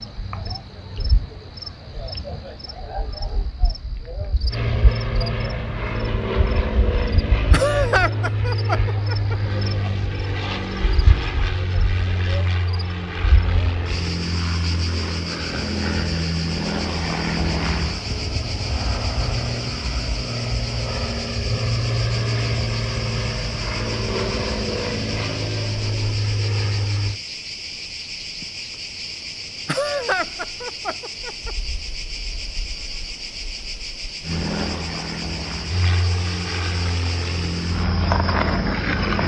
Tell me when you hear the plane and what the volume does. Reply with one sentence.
The plane can be heard from 4.5 to 27.2 s, at a steady volume; and from 34.2 to 39.2 s, at a steady volume.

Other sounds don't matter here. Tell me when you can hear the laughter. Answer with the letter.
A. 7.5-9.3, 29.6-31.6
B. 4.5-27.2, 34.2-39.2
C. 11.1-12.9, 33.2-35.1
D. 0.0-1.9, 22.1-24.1
A.